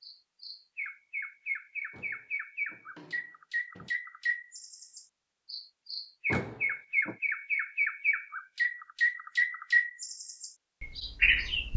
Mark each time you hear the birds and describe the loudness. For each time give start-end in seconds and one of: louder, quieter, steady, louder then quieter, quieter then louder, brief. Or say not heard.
0.0-11.7 louder.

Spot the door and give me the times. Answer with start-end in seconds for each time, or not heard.
1.9-3.9, 6.2-7.2.